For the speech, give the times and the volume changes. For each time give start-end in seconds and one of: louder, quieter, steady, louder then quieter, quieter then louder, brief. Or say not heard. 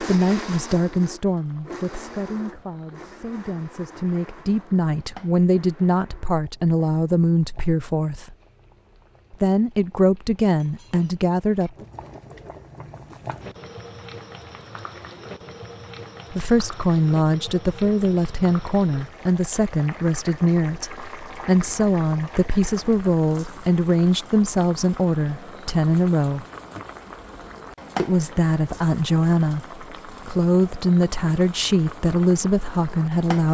0.0-8.3 quieter then louder
9.3-11.8 brief
16.3-26.4 steady
27.9-33.4 steady.